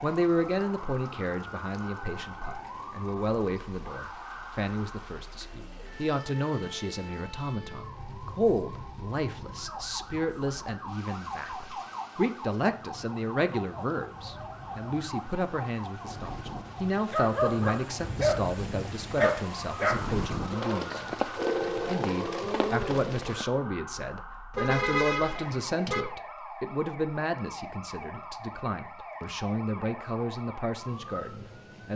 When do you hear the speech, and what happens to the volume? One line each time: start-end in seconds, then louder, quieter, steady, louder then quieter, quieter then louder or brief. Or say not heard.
0.0-31.9 steady.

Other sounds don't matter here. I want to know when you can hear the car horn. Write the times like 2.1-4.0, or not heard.
24.5-26.1.